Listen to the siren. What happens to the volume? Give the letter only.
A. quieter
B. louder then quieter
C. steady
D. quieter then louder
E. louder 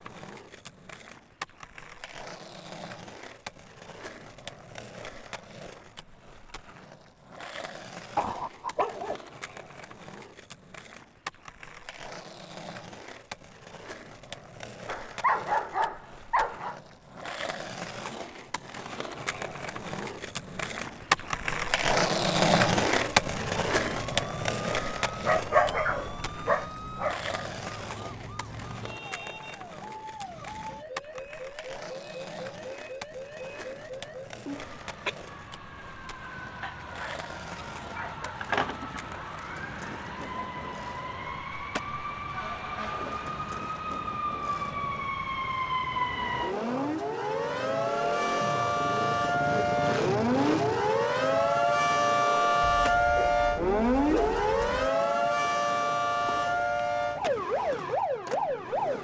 E.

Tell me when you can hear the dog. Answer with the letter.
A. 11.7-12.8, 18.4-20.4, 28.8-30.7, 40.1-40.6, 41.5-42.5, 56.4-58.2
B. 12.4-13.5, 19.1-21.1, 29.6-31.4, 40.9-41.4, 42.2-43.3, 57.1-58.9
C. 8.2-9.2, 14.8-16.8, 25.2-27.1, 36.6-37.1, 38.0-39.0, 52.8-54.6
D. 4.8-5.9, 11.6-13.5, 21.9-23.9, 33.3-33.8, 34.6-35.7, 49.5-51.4
C.